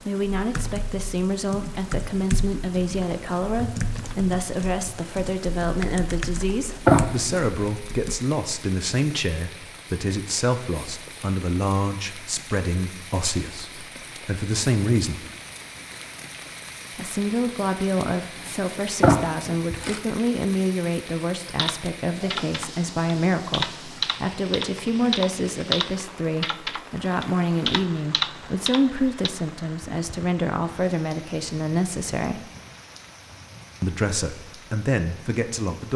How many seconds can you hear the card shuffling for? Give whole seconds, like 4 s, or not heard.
2 s.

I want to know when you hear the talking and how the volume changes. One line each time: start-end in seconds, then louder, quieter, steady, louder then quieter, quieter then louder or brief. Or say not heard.
0.0-15.2 steady
16.9-32.5 steady
33.8-35.9 brief.